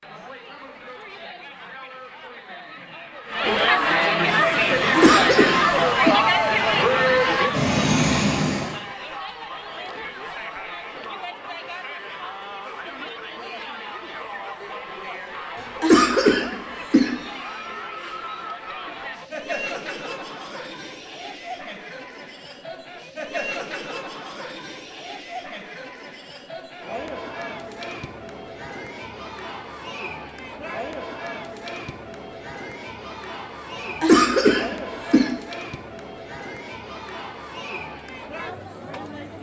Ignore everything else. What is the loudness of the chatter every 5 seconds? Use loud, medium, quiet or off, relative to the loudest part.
loud, loud, quiet, quiet, quiet, quiet, quiet, quiet.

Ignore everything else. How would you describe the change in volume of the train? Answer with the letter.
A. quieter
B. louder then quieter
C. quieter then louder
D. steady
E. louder
E.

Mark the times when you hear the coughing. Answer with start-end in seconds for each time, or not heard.
4.9-6.2, 15.8-17.2, 33.8-35.4.